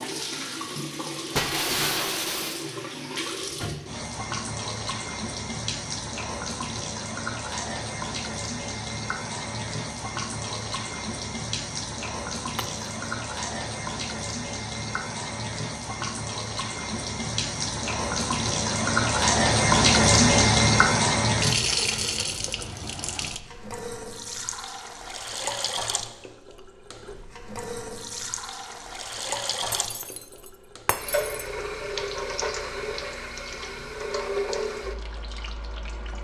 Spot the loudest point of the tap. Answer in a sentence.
The loudest moment of the tap is at 20 seconds.